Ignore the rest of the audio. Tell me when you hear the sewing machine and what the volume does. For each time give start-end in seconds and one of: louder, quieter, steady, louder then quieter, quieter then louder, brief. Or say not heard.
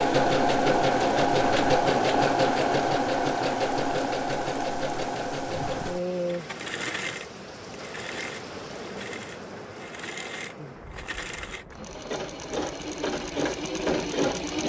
0.0-14.6 quieter then louder.